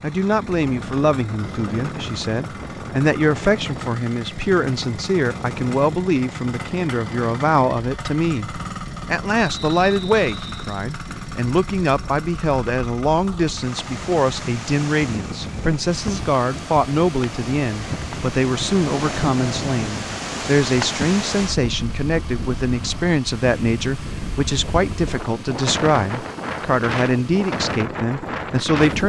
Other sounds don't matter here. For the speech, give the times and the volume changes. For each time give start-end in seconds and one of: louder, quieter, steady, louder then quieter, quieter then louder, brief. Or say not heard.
0.0-29.0 steady.